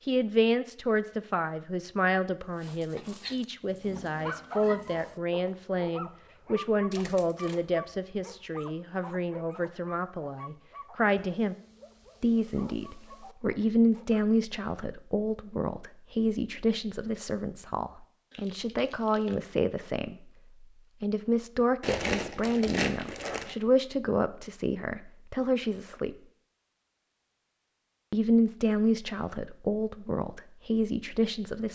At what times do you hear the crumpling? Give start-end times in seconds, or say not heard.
6.9-7.6, 18.3-19.4, 21.8-23.6.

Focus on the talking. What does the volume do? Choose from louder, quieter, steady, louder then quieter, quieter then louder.
steady.